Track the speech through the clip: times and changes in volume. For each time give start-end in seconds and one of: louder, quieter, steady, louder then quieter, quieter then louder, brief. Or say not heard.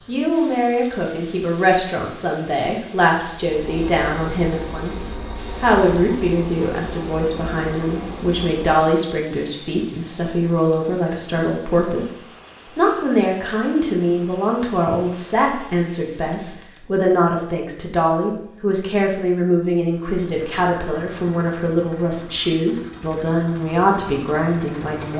0.1-25.1 steady.